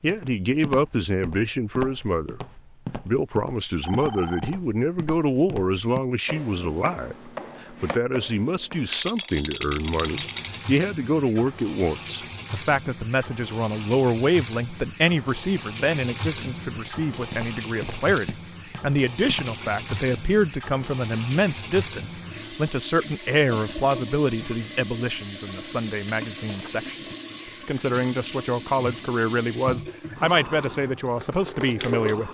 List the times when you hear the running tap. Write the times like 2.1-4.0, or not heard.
9.6-32.2.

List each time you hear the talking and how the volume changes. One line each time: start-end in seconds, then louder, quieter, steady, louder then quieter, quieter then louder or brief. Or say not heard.
0.0-2.4 brief
3.0-32.2 steady.